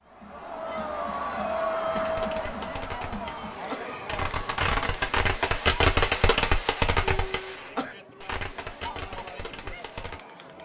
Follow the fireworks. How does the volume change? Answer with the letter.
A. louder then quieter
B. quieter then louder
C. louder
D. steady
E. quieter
A.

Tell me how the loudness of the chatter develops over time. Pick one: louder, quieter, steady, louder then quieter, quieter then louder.
quieter.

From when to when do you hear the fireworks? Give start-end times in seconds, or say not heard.
1.9-10.2.